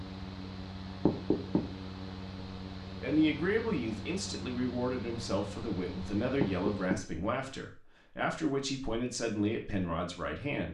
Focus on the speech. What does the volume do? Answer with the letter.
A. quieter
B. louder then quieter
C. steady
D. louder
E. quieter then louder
C.